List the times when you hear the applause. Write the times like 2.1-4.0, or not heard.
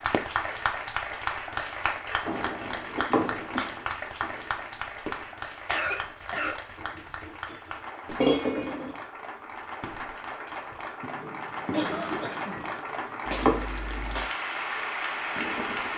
0.0-15.9.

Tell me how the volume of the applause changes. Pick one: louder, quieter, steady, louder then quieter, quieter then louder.
quieter then louder.